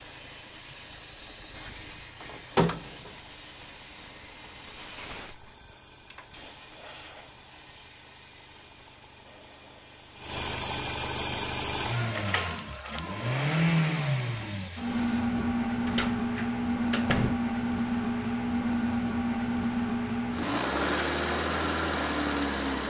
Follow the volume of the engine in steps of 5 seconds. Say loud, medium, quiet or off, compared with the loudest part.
quiet, quiet, loud, loud, loud.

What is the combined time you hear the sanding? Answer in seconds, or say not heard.
not heard.